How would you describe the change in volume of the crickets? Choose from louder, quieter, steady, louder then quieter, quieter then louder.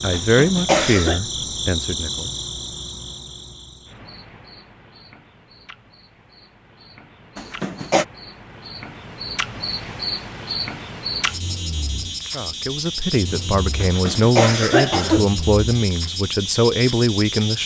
quieter then louder.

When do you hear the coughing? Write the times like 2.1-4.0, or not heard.
0.1-1.2, 7.3-8.1, 13.8-15.2.